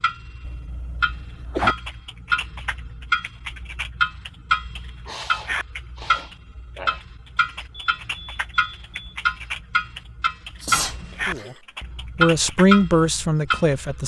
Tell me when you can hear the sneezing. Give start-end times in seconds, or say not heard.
0.4-1.8, 5.0-7.0, 10.6-11.6.